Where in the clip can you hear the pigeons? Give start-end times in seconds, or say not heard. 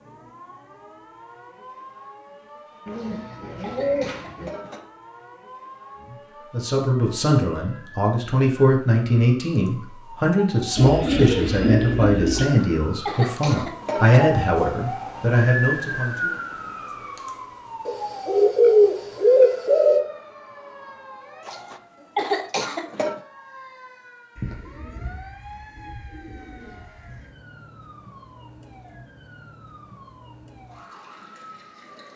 2.9-4.5, 10.8-12.4, 17.9-20.1, 24.4-27.3.